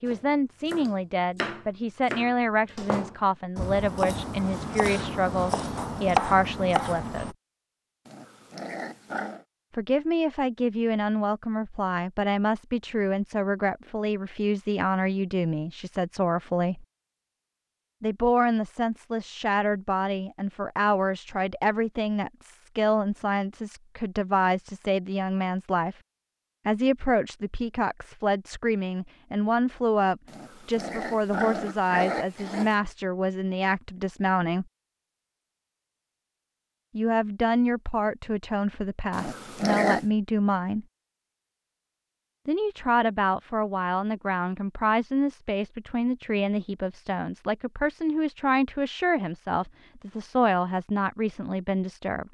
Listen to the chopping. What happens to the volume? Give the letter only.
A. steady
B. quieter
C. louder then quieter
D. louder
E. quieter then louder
D.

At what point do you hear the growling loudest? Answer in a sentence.
The loudest moment of the growling is at 40 seconds.